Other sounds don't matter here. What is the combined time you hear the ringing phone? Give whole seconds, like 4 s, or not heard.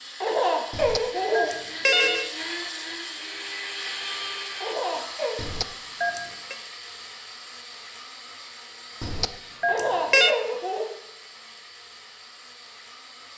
4 s.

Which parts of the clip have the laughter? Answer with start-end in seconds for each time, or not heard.
0.2-1.6, 4.6-5.5, 9.7-10.9.